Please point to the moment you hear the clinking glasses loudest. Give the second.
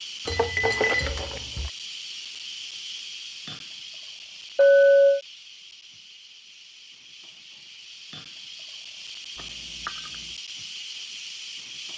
5 s.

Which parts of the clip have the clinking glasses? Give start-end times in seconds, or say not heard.
0.2-1.7, 4.5-5.2, 9.3-10.2.